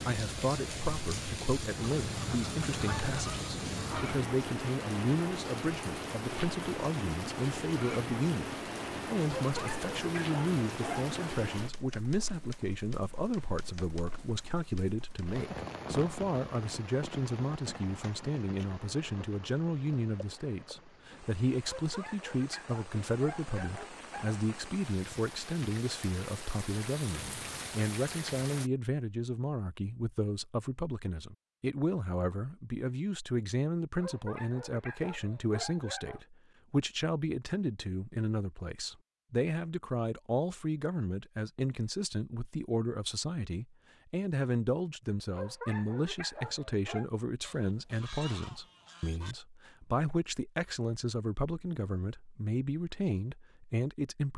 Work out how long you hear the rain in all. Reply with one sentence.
You can hear the rain for 29 seconds altogether.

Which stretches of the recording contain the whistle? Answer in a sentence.
The whistle can't be heard in this clip.